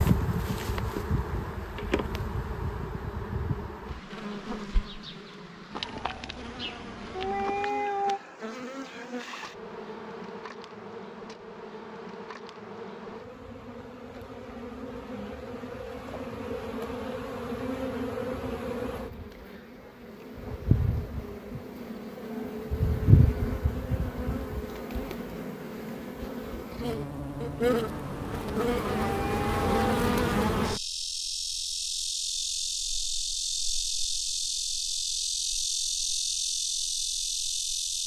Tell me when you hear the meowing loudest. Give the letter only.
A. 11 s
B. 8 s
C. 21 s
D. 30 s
B.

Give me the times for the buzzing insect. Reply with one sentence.
You can hear the buzzing insect from 0.0 to 38.0 s.